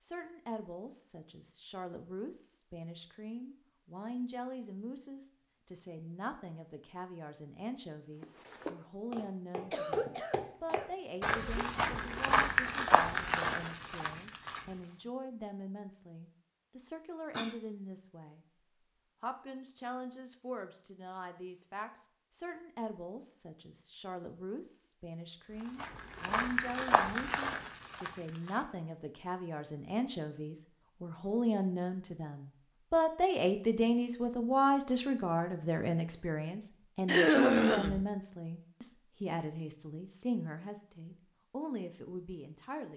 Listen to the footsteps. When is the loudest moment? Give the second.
12 s.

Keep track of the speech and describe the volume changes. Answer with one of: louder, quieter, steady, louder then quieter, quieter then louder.
louder.